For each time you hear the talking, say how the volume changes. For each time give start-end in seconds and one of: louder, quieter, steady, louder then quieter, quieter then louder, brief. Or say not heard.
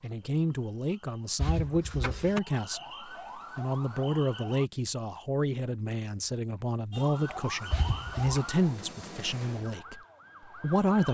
0.0-10.0 steady
10.6-11.1 brief.